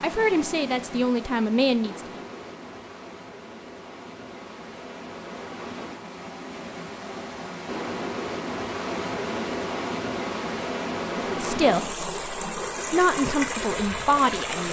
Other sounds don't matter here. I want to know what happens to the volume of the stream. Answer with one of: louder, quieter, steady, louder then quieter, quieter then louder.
louder.